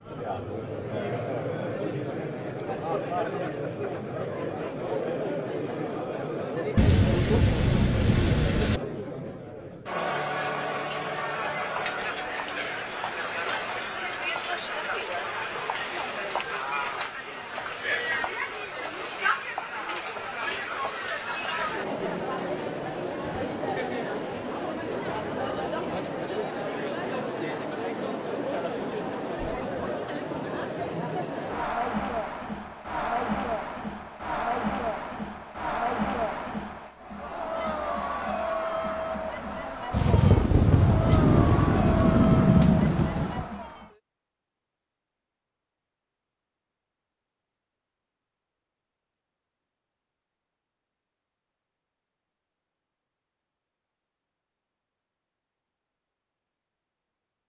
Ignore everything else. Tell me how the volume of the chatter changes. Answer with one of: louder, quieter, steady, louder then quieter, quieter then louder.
steady.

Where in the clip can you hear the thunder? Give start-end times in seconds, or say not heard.
6.8-8.8, 39.9-43.5.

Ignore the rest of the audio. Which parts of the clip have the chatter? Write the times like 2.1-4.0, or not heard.
0.0-44.0.